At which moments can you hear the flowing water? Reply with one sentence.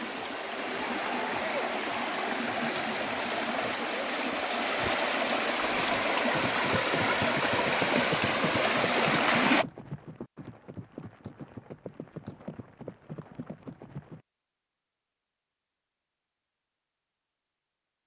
The flowing water can be heard from 0.0 to 9.7 s.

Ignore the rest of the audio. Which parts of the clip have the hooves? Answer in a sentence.
You can hear the hooves from 5.5 to 14.2 s.